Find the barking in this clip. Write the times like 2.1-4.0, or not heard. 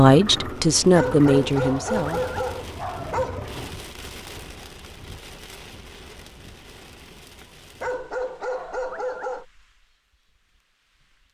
0.9-3.6, 7.8-9.4.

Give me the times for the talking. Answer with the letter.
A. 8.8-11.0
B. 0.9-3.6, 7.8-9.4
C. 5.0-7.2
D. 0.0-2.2
D.